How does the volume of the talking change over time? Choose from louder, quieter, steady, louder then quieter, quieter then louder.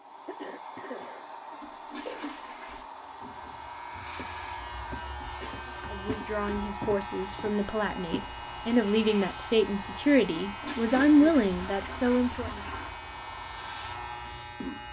louder.